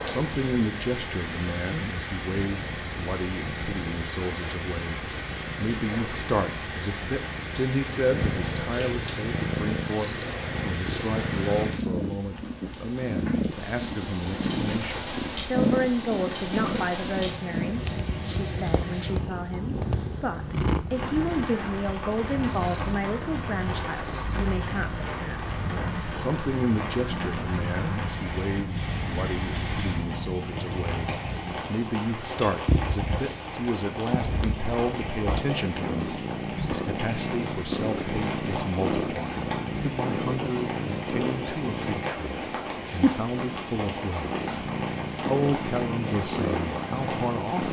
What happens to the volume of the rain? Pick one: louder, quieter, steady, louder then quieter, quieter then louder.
steady.